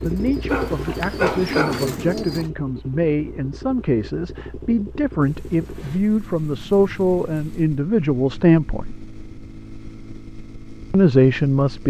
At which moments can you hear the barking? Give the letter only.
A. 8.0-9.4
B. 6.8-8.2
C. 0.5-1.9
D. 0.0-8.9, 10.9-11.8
C.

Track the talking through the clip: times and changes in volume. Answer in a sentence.
The talking can be heard from 0.0 to 8.9 s, getting louder; and briefly from 10.9 to 11.8 s.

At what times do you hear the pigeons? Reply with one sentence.
You can hear the pigeons from 0.0 to 2.5 s.